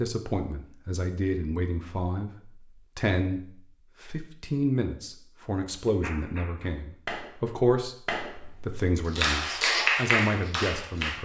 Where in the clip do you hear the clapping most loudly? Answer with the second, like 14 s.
10 s.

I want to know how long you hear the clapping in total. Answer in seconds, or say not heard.
5 s.